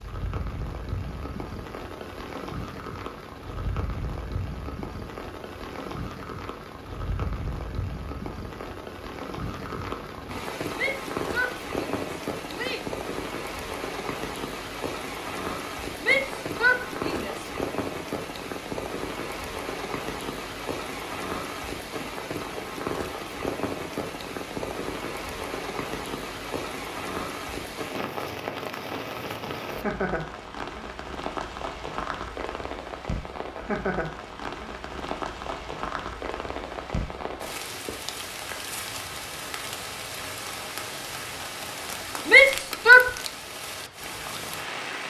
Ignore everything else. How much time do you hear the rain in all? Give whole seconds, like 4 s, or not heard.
45 s.